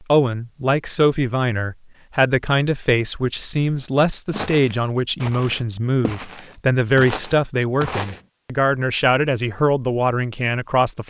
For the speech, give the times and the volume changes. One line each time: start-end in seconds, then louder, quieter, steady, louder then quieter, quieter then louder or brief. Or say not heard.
0.1-11.0 steady.